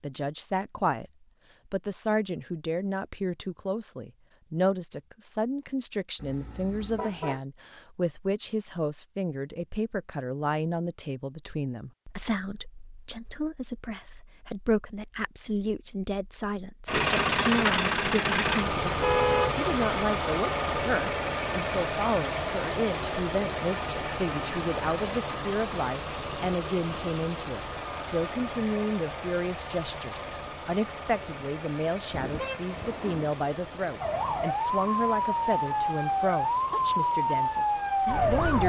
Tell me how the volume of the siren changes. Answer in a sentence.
The volume of the siren stays about the same.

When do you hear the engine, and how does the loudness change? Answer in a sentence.
The engine can be heard from 16.9 to 38.6 s, getting quieter.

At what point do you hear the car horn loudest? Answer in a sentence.
The volume of the car horn peaks at 19 seconds.